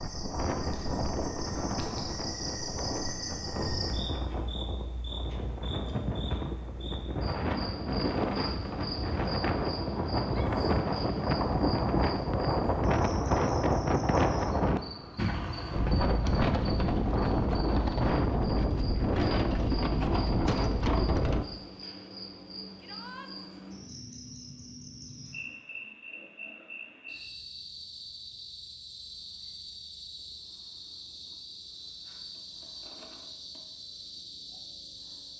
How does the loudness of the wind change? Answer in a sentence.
The loudness of the wind goes up.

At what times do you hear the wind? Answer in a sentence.
You can hear the wind from 0.0 to 21.4 s.